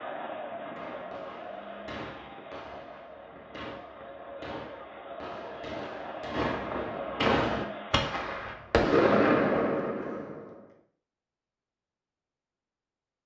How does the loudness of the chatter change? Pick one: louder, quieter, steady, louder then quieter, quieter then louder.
quieter then louder.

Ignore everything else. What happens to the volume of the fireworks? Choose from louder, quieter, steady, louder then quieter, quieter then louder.
louder.